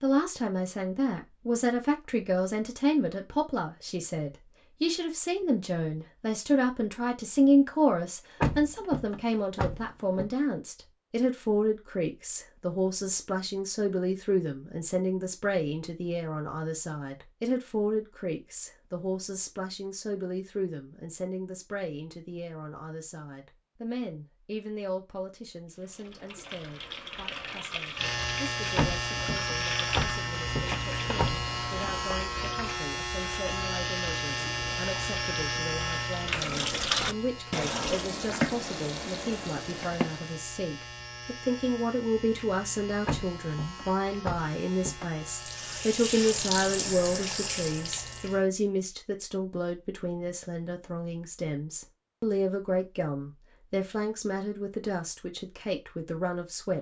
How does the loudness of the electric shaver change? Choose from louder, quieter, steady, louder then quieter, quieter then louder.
quieter.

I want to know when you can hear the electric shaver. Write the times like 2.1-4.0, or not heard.
27.9-48.5.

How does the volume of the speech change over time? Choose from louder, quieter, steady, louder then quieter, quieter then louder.
quieter then louder.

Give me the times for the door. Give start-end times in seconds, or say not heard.
8.4-10.2, 28.8-31.4, 43.0-45.0.